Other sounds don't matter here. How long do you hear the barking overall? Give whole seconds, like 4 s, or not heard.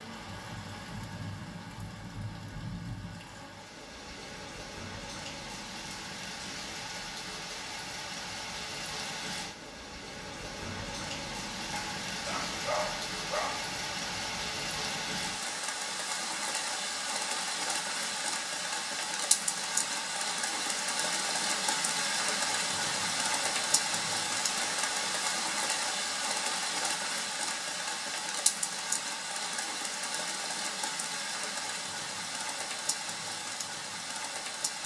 2 s.